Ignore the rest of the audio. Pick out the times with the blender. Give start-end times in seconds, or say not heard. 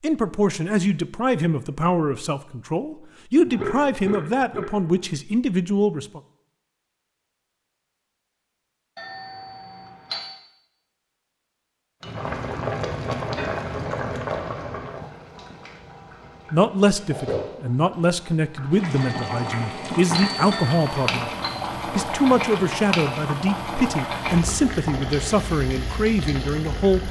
not heard.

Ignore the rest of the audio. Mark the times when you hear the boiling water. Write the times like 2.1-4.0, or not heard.
12.0-27.0.